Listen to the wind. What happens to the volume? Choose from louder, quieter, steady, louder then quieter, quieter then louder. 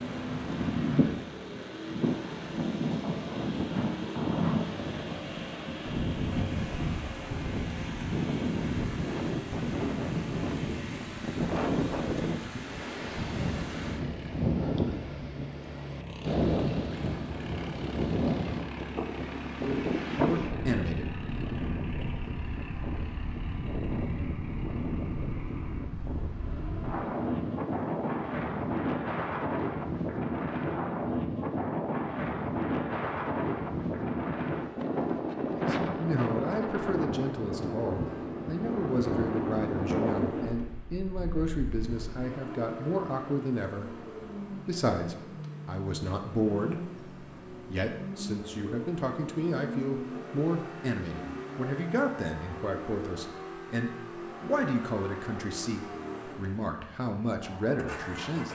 steady.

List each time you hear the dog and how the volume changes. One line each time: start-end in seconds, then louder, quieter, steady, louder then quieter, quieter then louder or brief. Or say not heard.
not heard.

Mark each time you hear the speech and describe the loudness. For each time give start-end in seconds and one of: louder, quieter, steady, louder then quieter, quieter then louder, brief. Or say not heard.
19.6-21.1 brief
35.5-58.5 steady.